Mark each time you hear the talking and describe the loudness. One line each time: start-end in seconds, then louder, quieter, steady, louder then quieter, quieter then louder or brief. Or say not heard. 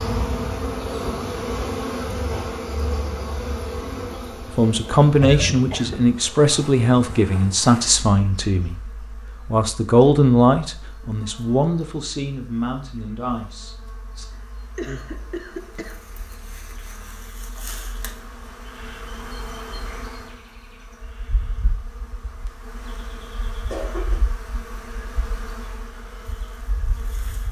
4.5-14.2 quieter.